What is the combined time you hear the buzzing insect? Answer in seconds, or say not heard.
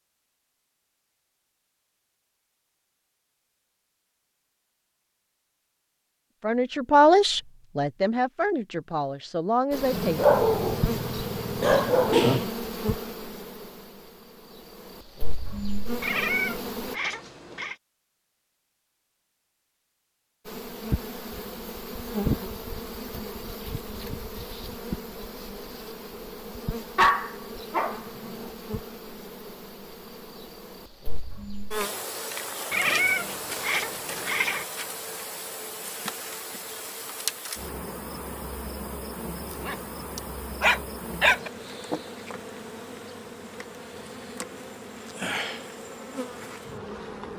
34 s.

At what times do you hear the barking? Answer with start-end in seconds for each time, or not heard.
9.9-12.5, 26.9-28.5, 39.5-41.5.